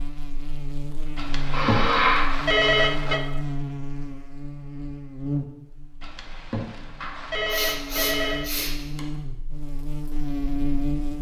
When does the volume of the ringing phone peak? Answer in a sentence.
The loudest moment of the ringing phone is at 3 seconds.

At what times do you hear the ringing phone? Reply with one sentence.
The ringing phone can be heard from 1.1 to 3.2 s and from 6.0 to 8.5 s.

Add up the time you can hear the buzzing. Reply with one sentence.
You can hear the buzzing for 11 seconds altogether.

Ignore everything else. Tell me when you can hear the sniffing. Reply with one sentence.
The sniffing can be heard from 1.5 to 2.3 s and from 7.5 to 9.0 s.